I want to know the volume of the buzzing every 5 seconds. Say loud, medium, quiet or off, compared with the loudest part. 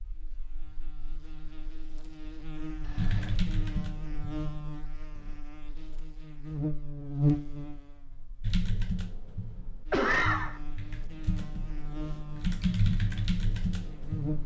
medium, loud, medium.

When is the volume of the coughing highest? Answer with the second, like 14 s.
10 s.